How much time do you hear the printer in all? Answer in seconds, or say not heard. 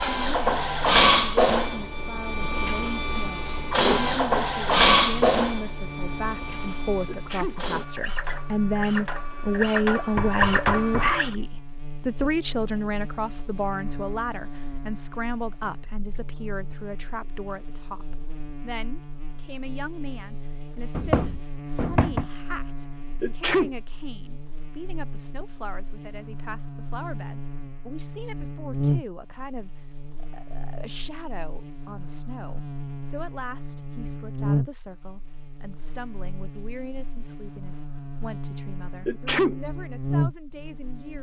11 s.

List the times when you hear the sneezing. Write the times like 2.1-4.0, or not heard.
7.0-7.6, 23.2-23.7, 39.0-39.5.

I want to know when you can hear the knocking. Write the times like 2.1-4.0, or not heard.
10.2-11.2, 20.9-22.2.